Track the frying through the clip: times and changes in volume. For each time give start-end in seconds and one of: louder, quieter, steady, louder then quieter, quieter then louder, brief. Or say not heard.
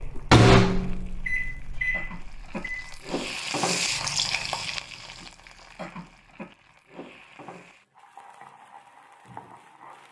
0.0-10.0 louder then quieter.